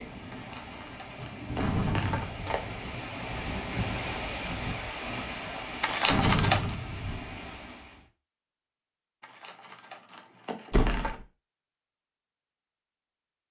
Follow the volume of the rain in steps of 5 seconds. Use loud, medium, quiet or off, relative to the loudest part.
loud, loud, off.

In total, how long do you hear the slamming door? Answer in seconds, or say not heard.
3 s.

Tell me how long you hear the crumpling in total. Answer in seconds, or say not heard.
5 s.